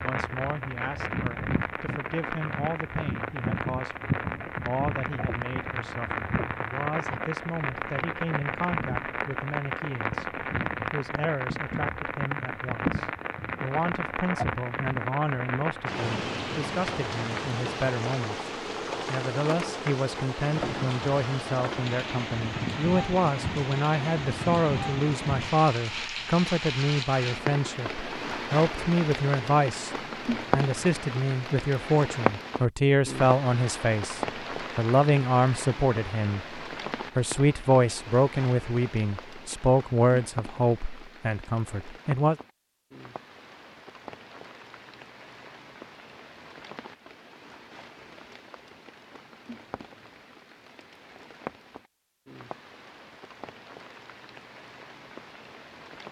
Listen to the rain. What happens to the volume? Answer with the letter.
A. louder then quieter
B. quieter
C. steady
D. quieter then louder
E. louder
B.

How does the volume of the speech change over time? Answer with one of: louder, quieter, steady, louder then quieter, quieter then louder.
louder.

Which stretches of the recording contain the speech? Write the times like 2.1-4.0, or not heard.
0.0-18.4, 19.1-29.9, 30.5-42.4.